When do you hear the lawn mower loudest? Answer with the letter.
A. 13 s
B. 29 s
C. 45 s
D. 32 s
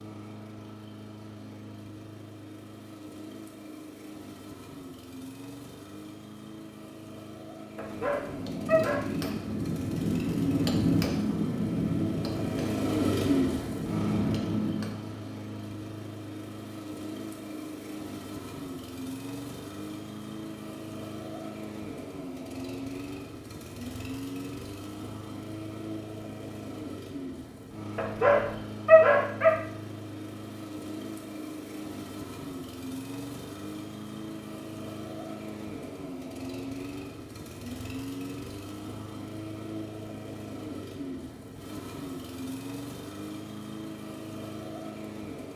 A.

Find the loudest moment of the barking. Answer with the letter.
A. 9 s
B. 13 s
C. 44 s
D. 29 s
D.